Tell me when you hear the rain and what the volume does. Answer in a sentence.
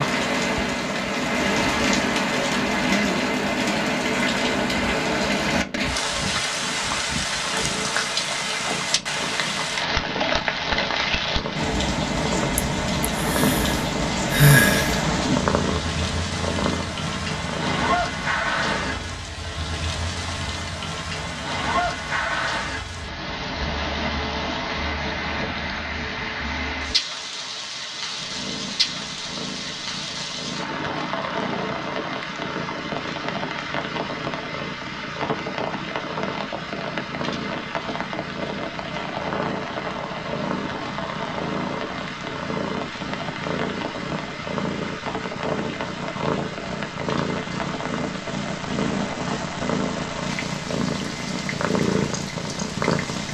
The rain can be heard from 0.0 to 53.2 s, getting quieter.